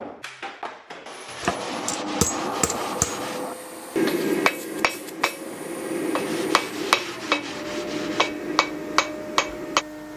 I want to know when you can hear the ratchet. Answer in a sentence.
You can't hear the ratchet here.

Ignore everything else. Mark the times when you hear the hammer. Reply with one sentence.
You can hear the hammer from 1.4 to 9.8 s.